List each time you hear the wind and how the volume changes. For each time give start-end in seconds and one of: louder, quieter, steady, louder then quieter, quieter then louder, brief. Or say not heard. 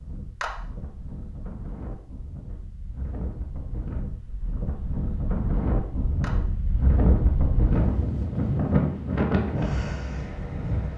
0.0-10.9 louder.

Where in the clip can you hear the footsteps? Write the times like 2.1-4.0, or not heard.
not heard.